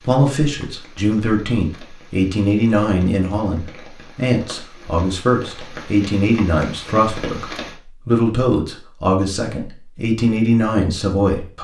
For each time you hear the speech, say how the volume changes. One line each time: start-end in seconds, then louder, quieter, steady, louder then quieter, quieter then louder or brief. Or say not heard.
0.1-11.6 steady.